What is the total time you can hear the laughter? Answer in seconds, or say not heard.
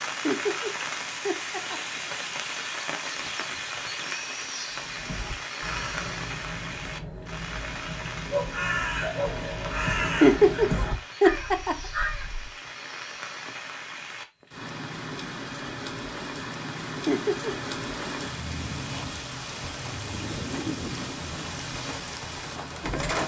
4 s.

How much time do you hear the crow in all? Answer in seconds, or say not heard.
8 s.